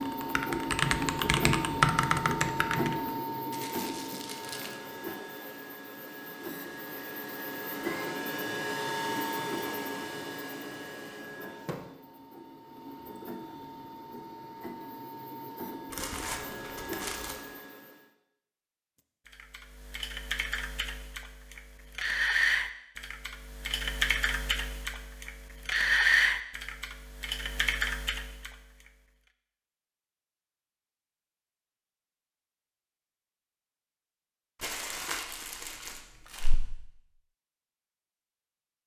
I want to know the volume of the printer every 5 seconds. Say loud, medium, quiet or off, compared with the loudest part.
loud, loud, medium, medium, off, off, off, off.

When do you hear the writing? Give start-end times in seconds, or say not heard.
not heard.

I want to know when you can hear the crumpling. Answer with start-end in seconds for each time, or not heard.
3.5-4.8, 15.9-17.4, 34.6-36.5.